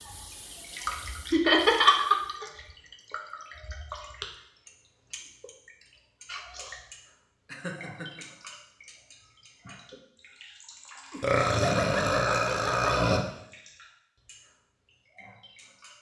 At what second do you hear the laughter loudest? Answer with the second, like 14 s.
2 s.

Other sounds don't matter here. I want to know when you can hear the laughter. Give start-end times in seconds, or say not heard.
1.3-2.1, 7.5-8.2, 11.1-13.2.